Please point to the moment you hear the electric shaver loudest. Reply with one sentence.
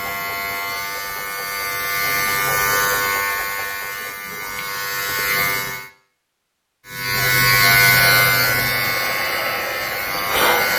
The loudest moment of the electric shaver is at 8 seconds.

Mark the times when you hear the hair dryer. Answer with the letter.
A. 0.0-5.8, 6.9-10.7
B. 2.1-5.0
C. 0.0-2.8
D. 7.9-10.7
D.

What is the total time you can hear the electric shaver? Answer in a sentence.
You can hear the electric shaver for 10 seconds altogether.